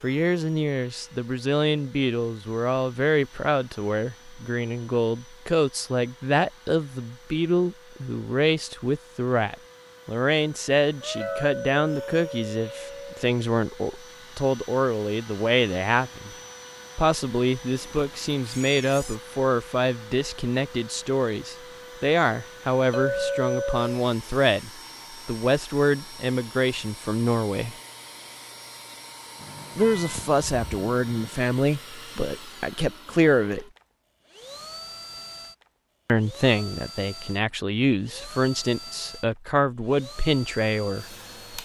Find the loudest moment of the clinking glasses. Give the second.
23 s.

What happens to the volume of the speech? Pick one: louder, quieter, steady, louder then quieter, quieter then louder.
steady.